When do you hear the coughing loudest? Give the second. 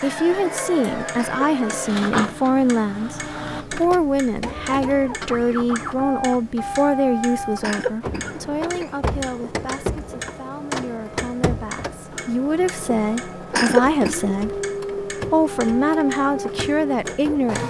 14 s.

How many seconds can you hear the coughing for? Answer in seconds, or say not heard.
3 s.